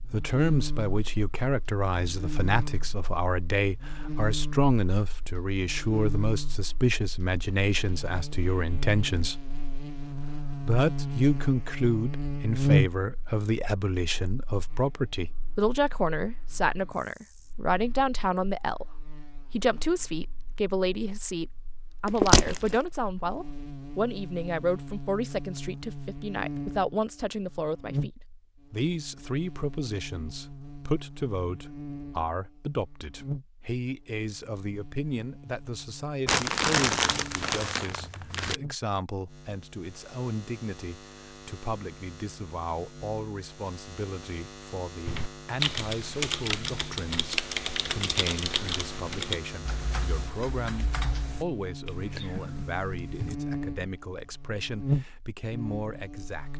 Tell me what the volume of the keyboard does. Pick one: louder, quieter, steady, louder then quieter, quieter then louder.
quieter.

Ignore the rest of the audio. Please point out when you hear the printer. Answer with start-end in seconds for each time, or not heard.
not heard.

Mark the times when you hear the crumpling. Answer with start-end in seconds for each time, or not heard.
22.1-22.8, 36.2-38.5.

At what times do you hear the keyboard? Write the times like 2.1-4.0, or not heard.
45.0-53.4.